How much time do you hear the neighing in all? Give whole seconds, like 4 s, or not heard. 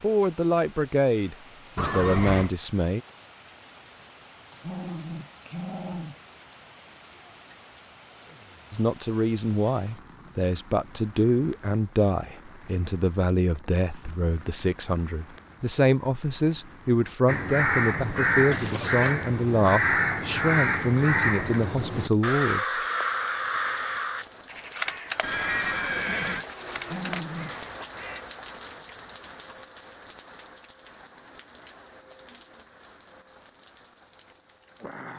3 s.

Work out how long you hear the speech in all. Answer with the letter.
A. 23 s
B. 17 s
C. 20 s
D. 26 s
B.